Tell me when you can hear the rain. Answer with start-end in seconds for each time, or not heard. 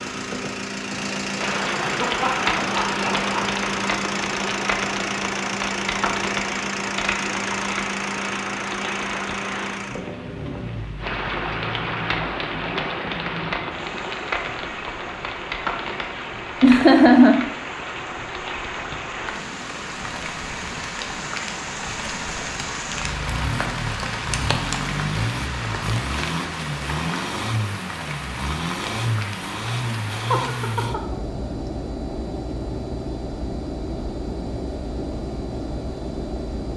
0.1-30.8.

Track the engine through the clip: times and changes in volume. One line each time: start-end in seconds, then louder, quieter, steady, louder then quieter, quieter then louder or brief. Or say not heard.
0.0-36.7 quieter then louder.